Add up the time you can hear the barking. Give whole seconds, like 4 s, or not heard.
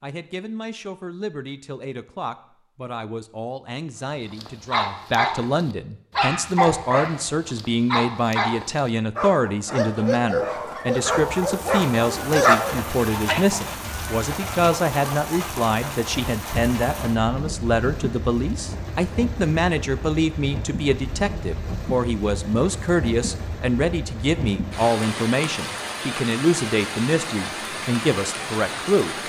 9 s.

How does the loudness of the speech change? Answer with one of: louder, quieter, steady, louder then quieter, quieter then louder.
louder.